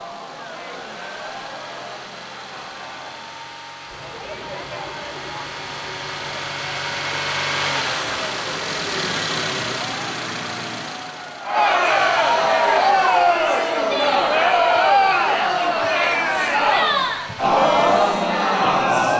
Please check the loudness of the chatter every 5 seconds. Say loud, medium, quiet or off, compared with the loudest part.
quiet, quiet, loud, loud.